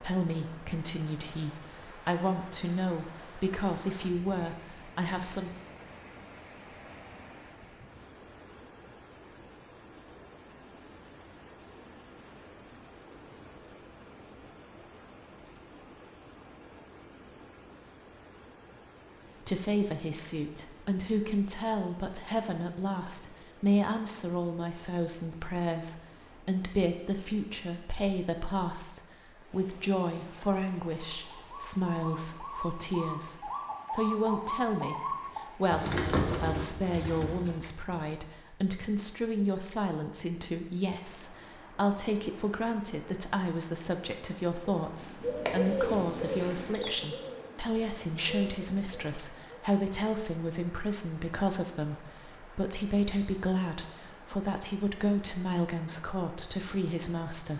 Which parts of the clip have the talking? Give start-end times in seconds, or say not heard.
0.0-5.5, 19.4-57.5.